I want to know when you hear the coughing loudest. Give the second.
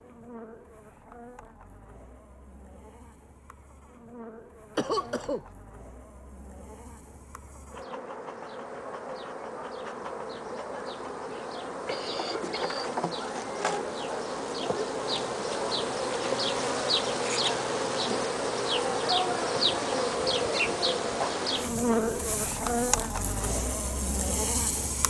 5 s.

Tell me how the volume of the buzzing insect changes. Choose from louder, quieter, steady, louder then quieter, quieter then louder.
louder.